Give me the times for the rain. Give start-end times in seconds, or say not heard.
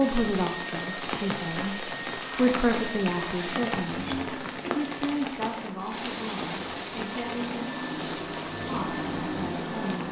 0.0-10.0.